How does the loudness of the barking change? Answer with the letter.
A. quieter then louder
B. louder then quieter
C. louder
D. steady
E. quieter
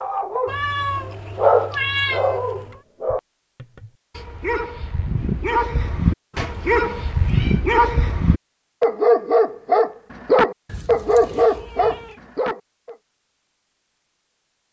A.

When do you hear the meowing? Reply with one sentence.
You can hear the meowing from 0.5 to 2.8 s, from 6.3 to 7.6 s and from 10.7 to 12.2 s.